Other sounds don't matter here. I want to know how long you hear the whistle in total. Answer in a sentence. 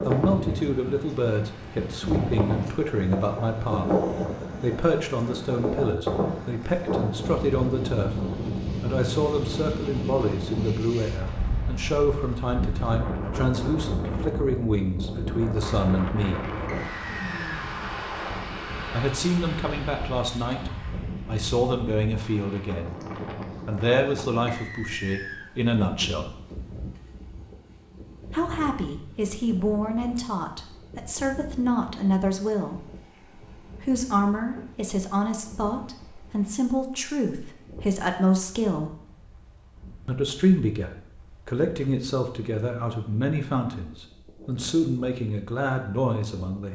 You can hear the whistle for 2 seconds altogether.